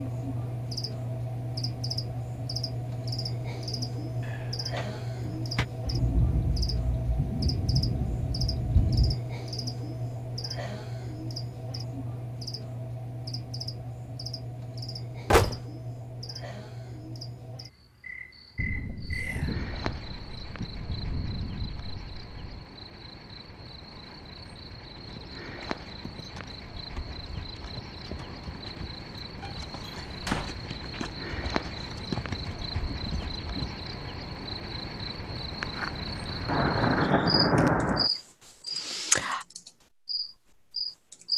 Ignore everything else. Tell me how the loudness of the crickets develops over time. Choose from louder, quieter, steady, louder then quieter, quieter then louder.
quieter then louder.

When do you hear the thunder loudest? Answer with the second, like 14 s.
38 s.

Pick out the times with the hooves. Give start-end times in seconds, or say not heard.
24.9-33.7.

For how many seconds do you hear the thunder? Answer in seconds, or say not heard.
10 s.